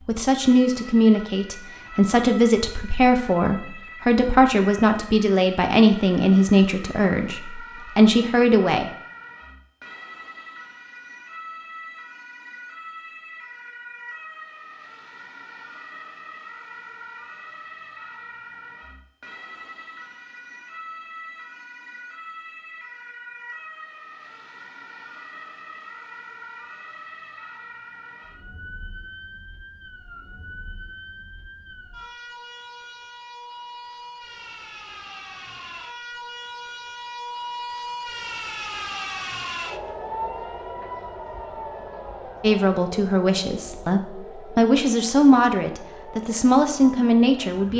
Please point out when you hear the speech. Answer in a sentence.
The speech can be heard from 0.1 to 8.9 s and from 42.4 to 47.7 s.